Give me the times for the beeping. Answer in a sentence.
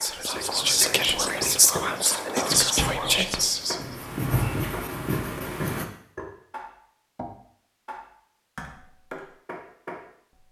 The beeping can't be heard in this clip.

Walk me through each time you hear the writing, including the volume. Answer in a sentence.
You can hear the writing from 0.5 to 5.8 s, getting louder.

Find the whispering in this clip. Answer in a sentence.
You can hear the whispering from 0.0 to 4.1 s.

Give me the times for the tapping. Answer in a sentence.
The tapping can be heard from 0.0 to 10.4 s.